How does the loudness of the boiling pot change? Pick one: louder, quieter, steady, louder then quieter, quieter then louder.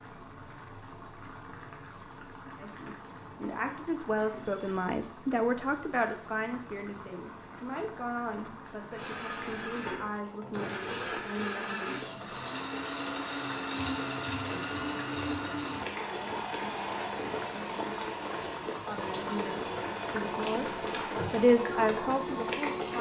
louder.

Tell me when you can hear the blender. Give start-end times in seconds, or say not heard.
8.9-22.9.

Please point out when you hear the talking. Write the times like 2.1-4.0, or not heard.
2.5-12.2, 18.9-22.9.